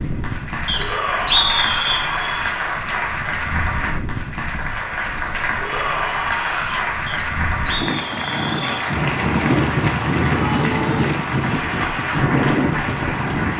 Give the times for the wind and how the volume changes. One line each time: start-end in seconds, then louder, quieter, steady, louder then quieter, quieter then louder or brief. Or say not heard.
0.0-13.5 louder.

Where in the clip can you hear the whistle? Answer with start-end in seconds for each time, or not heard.
0.7-2.0, 7.0-8.7.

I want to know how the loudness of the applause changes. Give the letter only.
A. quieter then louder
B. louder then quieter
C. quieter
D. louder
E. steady
E.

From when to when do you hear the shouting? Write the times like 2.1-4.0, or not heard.
0.8-2.5, 5.5-6.8, 10.3-11.2.